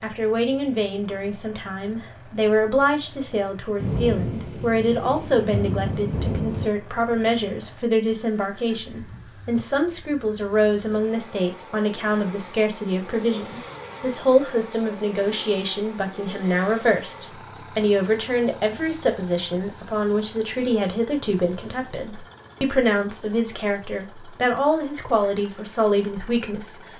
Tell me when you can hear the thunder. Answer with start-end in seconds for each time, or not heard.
3.8-6.7.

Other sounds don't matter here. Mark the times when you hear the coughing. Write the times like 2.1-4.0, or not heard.
not heard.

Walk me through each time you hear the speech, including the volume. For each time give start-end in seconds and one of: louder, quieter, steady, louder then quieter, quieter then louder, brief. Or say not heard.
0.0-26.9 steady.